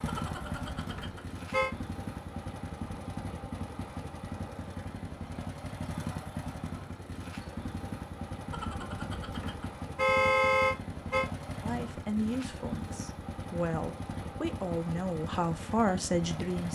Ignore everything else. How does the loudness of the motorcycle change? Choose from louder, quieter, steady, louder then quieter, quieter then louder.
steady.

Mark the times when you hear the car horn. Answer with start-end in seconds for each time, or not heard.
0.0-1.7, 8.4-11.3.